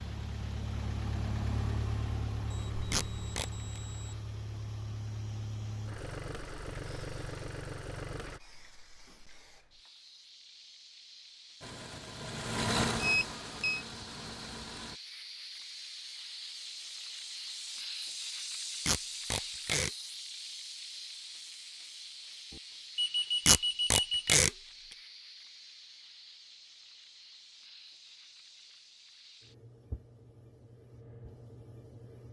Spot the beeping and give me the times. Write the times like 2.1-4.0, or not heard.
2.5-4.2, 13.0-13.8, 22.5-24.4.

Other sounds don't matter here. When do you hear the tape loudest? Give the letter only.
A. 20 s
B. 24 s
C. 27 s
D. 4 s
B.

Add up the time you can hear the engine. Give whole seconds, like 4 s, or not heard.
12 s.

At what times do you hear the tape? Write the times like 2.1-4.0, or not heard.
2.9-3.8, 18.9-19.9, 23.4-24.5.